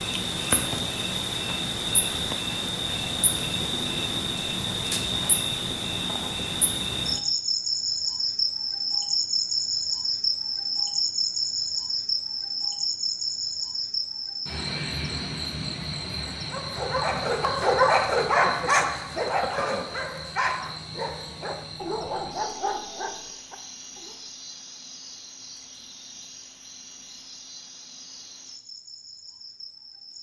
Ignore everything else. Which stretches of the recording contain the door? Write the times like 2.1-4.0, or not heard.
not heard.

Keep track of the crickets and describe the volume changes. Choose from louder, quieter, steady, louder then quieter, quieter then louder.
quieter.